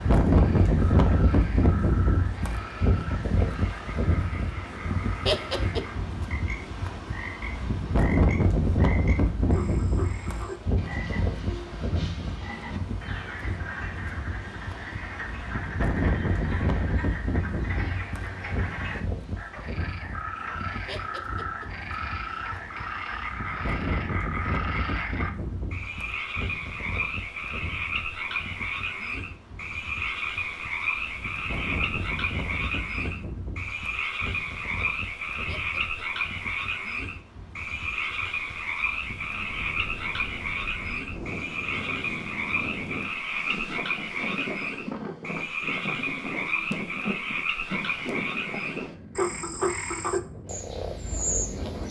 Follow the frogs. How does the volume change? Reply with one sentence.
The loudness of the frogs goes up.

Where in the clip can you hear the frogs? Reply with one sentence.
The frogs can be heard from 0.2 to 51.8 s.